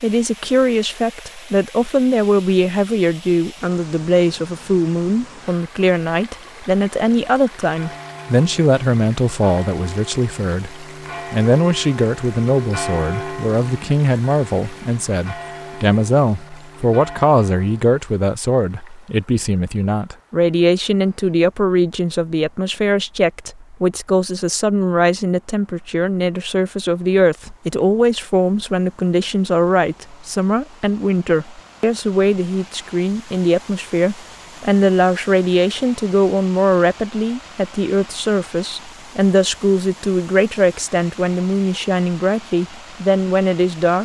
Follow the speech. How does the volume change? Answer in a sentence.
The loudness of the speech stays about the same.